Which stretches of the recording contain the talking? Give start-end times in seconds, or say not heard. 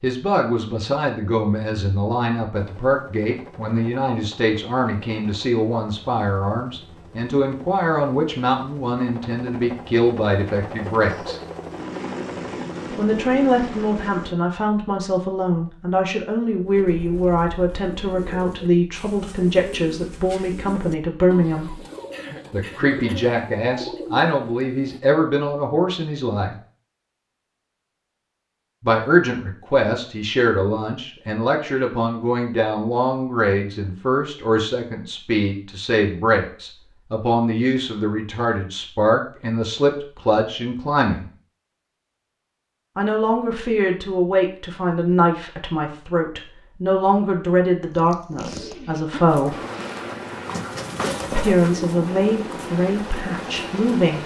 0.0-11.4, 12.9-21.8, 22.5-26.6, 28.8-41.2, 43.0-49.5, 51.3-54.2.